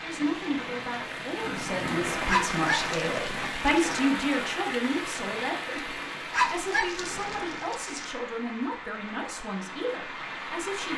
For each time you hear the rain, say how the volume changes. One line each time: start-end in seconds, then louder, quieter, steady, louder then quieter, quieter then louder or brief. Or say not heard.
0.0-10.9 quieter.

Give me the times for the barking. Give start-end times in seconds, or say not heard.
2.2-3.8, 6.3-8.1.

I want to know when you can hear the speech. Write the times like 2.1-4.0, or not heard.
0.0-10.9.